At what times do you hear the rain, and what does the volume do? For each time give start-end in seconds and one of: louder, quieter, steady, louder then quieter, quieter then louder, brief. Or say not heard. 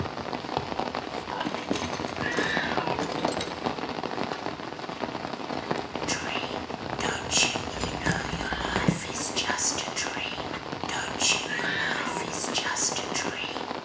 0.0-13.8 steady.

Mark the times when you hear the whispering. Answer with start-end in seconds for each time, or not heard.
6.0-13.7.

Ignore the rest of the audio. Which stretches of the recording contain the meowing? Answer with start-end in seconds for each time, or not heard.
2.1-3.0, 11.4-12.3.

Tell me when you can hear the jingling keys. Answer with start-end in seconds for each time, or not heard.
1.3-3.5, 7.8-9.0.